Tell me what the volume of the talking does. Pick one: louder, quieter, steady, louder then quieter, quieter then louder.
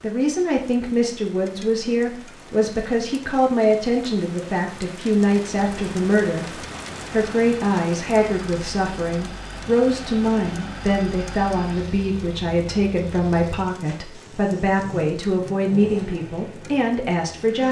steady.